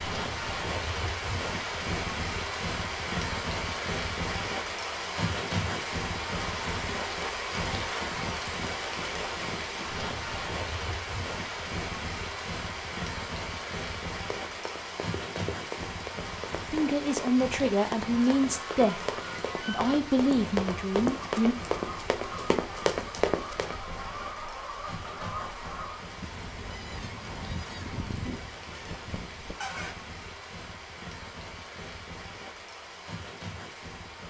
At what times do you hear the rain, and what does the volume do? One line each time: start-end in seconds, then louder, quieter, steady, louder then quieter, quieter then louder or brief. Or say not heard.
0.0-34.2 quieter.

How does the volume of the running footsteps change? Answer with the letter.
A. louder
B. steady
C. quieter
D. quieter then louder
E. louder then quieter
A.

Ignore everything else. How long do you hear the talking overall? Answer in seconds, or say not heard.
5 s.